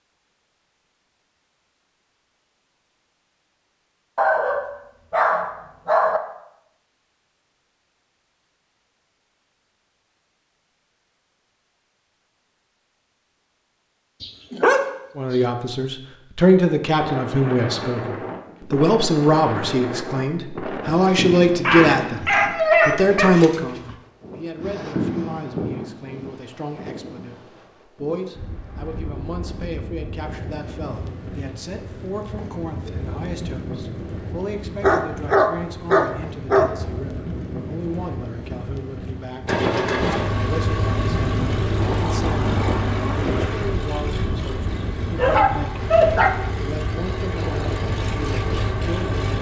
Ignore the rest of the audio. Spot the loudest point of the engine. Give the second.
40 s.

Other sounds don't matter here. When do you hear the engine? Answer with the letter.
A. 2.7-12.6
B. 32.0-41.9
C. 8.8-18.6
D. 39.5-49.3
D.